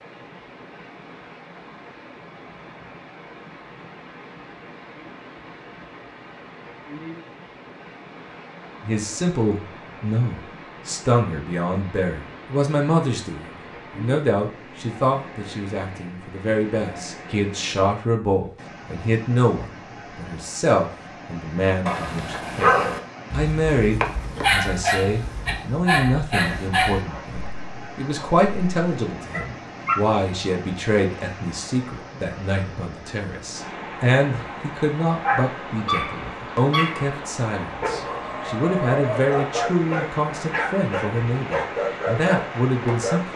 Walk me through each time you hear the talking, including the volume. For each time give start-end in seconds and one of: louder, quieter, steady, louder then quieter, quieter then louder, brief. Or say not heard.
8.8-43.3 steady.